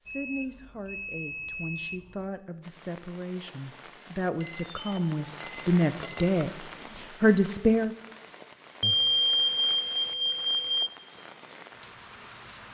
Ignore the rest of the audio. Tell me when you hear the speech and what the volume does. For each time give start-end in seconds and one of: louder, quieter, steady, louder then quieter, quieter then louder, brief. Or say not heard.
0.0-7.9 louder.